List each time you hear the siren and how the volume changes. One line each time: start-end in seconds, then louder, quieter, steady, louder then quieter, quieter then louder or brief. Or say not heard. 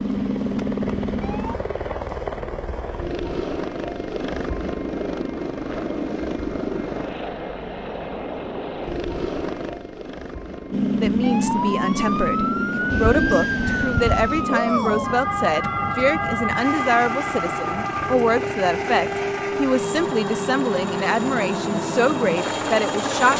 0.0-1.6 brief
10.7-23.3 quieter.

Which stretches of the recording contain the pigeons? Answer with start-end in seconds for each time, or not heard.
12.9-14.4.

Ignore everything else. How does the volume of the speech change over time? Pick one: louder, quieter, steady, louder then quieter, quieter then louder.
steady.